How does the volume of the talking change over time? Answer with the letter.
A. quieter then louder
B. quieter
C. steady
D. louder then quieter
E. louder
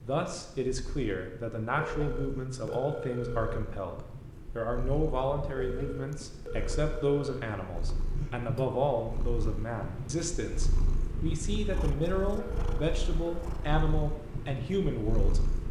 C.